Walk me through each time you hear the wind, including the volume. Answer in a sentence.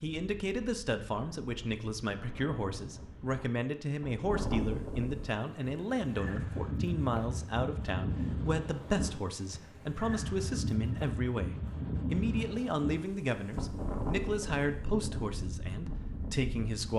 You can hear the wind from 0.0 to 16.9 s, getting louder.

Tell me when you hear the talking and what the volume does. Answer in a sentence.
You can hear the talking from 0.0 to 16.9 s, at a steady volume.